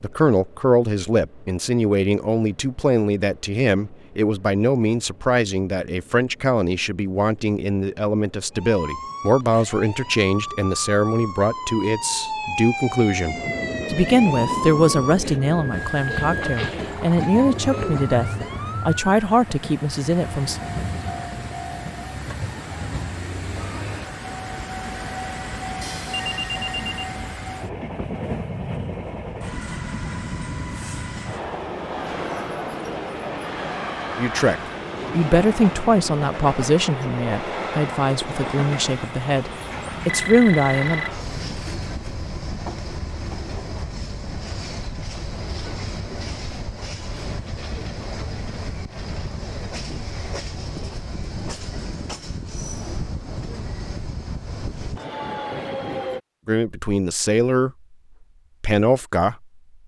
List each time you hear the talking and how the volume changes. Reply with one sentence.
The talking can be heard from 0.0 to 20.6 s, at a steady volume; from 34.1 to 41.0 s, getting quieter then louder; briefly from 56.5 to 57.7 s; and briefly from 58.6 to 59.4 s.